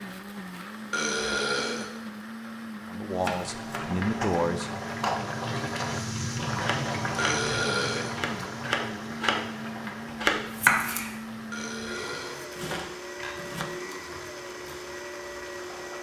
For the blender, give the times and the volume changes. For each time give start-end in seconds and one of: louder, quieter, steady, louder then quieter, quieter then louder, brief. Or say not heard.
0.0-15.9 steady.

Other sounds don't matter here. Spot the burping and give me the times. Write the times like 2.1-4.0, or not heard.
0.9-1.9, 7.2-8.2, 11.5-12.5.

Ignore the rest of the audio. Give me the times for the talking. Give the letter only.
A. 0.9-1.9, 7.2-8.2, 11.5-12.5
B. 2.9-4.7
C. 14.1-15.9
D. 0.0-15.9
B.